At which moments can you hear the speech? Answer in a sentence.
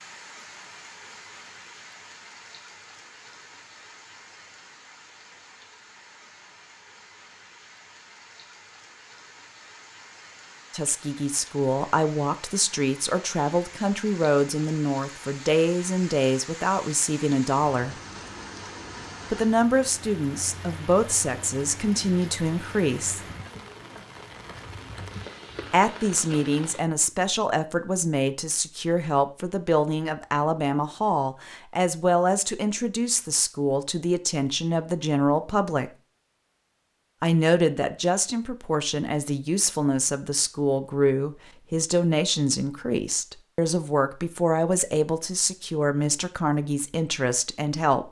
The speech can be heard from 10.7 to 17.9 s, from 19.3 to 23.2 s, from 25.7 to 36.0 s and from 37.2 to 48.0 s.